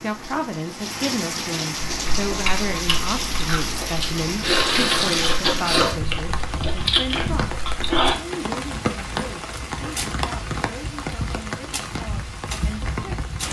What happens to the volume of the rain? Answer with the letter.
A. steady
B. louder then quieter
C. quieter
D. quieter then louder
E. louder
A.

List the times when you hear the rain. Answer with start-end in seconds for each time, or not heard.
0.0-13.4.